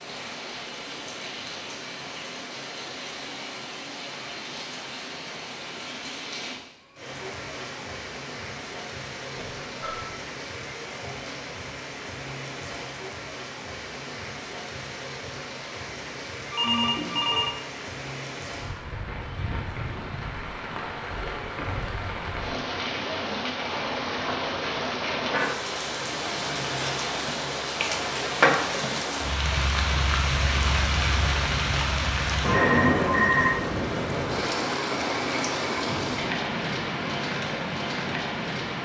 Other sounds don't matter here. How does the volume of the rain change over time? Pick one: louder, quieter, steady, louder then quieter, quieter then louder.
louder.